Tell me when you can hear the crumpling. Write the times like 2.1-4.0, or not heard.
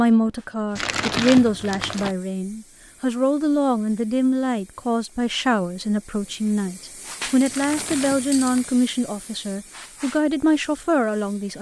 0.8-2.1, 7.5-8.7.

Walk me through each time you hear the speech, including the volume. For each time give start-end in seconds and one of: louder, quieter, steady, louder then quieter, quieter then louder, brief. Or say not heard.
0.0-11.5 steady.